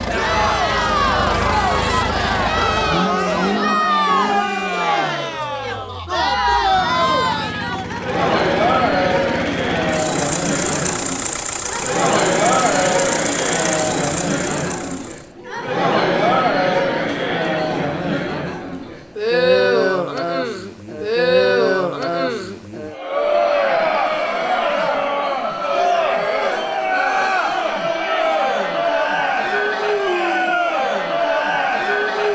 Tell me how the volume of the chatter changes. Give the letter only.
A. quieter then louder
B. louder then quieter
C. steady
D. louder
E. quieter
C.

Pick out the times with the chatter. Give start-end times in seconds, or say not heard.
0.1-32.3.